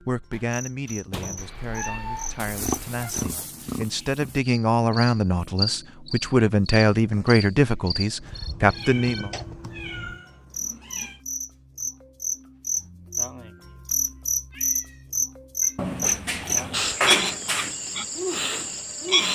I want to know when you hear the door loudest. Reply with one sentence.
The loudest moment of the door is at 17 seconds.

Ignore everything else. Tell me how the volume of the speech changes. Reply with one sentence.
The volume of the speech goes up.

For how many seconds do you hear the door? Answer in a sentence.
The door can be heard for 4 seconds in total.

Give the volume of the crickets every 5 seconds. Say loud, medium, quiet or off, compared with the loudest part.
quiet, medium, loud, loud.